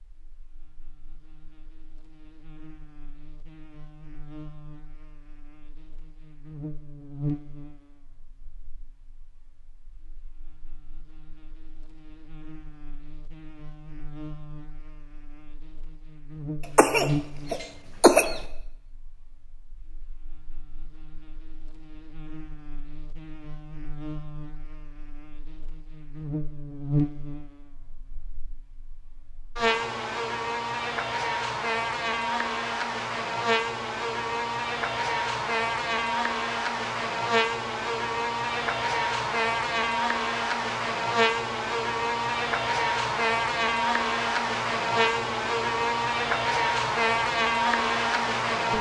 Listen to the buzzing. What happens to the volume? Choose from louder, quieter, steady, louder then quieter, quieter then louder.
louder.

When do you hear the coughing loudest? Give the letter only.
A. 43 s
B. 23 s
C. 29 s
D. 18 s
D.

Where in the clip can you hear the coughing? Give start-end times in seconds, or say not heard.
16.8-18.4.